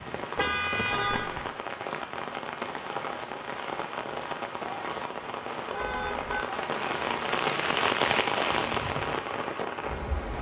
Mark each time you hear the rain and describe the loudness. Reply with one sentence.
You can hear the rain from 0.0 to 10.3 s, getting louder.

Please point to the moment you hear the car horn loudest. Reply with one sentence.
The loudest moment of the car horn is at 1 second.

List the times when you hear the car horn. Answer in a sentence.
The car horn can be heard from 0.3 to 1.5 s and from 5.7 to 6.5 s.